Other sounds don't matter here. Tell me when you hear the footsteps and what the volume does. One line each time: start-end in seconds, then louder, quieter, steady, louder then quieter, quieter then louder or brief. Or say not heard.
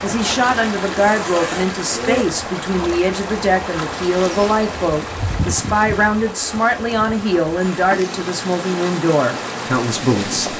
not heard.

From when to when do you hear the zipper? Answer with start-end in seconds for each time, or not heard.
0.9-2.2.